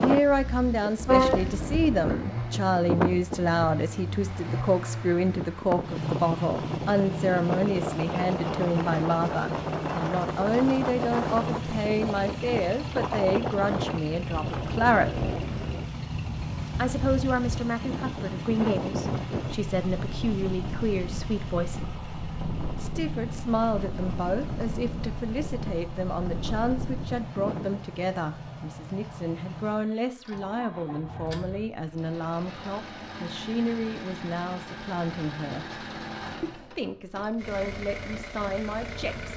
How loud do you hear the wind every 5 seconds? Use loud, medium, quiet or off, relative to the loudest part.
loud, loud, loud, loud, medium, medium, off, off.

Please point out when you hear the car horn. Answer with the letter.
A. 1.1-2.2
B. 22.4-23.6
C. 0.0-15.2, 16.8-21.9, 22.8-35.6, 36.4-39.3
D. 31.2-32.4
A.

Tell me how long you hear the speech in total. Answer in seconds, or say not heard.
36 s.